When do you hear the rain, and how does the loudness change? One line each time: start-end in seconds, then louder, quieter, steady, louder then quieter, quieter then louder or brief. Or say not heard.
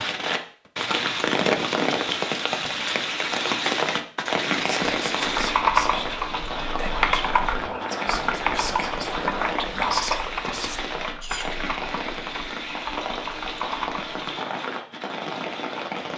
0.0-16.1 quieter.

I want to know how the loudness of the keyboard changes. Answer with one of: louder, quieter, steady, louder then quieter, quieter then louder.
quieter.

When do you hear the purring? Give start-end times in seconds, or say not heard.
not heard.